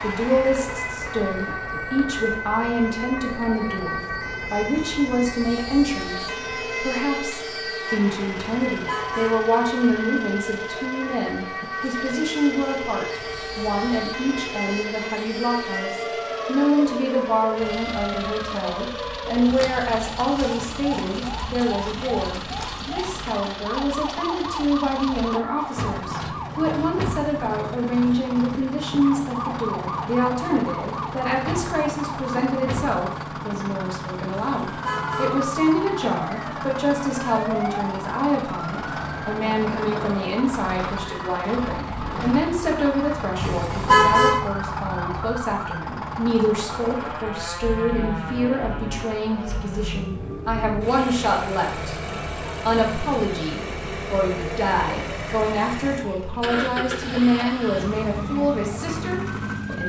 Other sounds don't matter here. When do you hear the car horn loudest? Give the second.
44 s.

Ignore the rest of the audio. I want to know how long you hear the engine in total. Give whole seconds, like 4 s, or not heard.
60 s.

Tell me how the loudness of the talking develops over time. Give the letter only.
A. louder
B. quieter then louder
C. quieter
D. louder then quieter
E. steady
E.